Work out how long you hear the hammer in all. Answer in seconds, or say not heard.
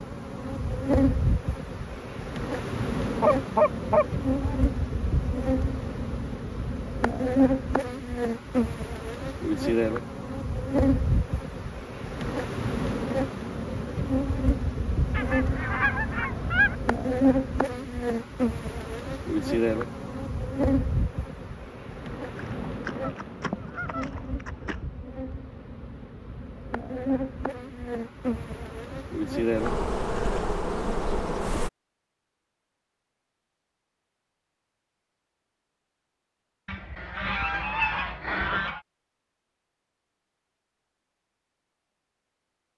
not heard.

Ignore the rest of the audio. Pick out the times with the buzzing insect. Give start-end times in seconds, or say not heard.
0.0-31.7.